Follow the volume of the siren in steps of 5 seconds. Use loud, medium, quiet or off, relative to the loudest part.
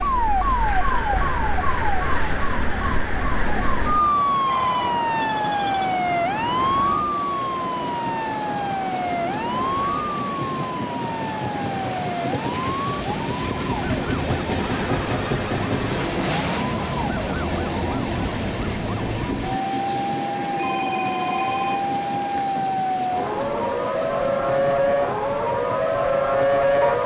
loud, loud, medium, medium, loud, loud.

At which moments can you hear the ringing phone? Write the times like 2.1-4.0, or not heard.
4.5-5.7, 14.1-16.1, 20.6-22.6.